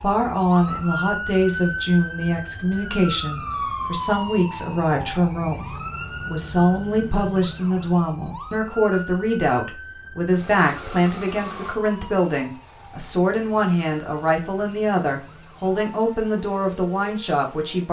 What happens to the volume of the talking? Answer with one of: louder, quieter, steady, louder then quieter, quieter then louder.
steady.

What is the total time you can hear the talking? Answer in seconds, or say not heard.
18 s.